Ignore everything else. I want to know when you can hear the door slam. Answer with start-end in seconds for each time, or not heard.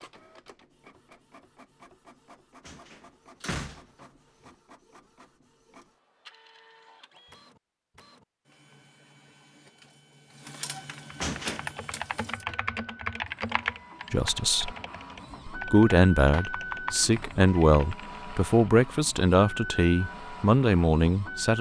2.6-4.0, 11.2-11.7.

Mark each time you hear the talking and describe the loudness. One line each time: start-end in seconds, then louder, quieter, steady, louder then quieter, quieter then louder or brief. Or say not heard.
14.1-14.7 brief
15.5-21.5 steady.